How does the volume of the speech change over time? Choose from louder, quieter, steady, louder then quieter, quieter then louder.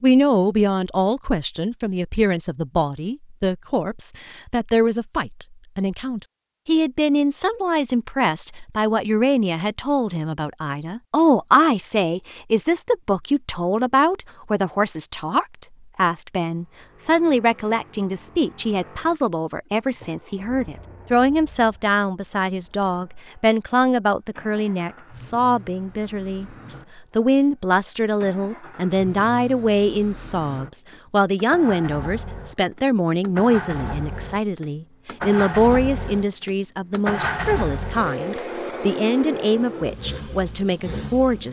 steady.